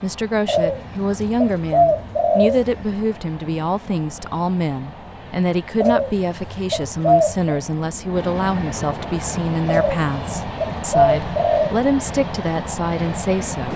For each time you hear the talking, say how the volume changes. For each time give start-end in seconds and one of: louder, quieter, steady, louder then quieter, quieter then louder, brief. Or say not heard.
0.0-13.7 steady.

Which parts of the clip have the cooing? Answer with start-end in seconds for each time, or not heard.
0.5-2.8, 5.8-7.5, 9.7-11.8.